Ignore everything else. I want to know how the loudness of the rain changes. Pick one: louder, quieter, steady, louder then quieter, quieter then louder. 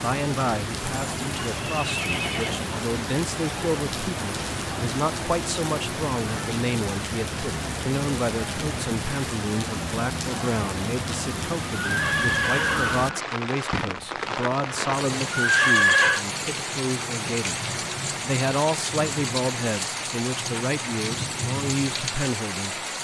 steady.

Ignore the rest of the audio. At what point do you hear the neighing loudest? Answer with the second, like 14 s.
16 s.